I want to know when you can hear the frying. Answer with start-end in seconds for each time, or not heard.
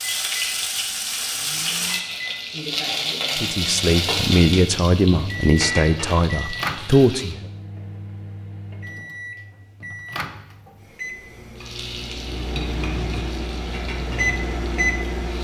0.0-7.3, 11.6-15.3.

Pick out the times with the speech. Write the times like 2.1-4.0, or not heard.
3.4-7.5.